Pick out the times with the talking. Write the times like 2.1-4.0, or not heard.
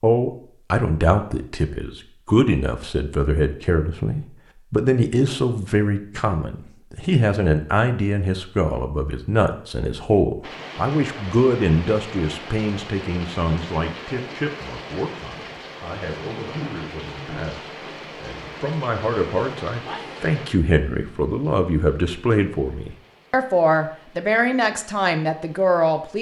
0.0-26.1.